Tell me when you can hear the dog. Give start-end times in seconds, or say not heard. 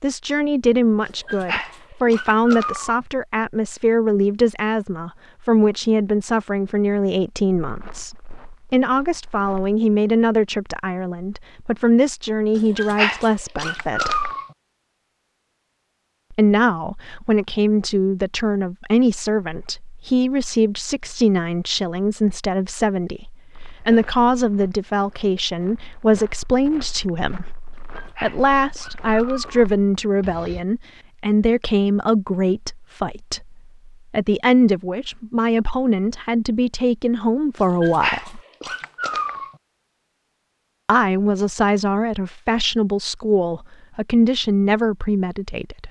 1.1-3.0, 12.6-14.5, 27.7-29.6, 37.6-39.5.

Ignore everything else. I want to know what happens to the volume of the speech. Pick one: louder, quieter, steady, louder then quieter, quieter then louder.
steady.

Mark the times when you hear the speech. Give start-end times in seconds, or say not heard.
0.0-14.3, 16.3-27.6, 28.2-38.4, 40.9-45.8.